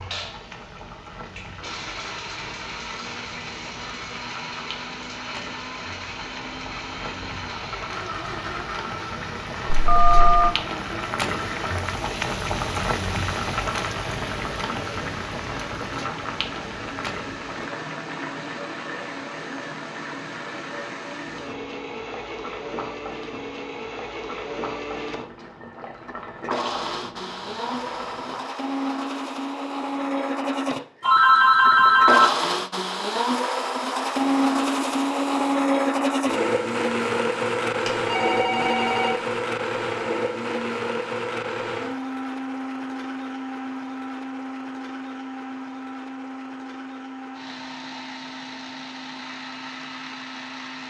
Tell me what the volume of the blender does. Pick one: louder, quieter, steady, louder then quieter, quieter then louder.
louder then quieter.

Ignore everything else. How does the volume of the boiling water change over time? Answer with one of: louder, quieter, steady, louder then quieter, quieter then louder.
louder then quieter.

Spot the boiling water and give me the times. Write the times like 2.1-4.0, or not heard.
0.0-28.5.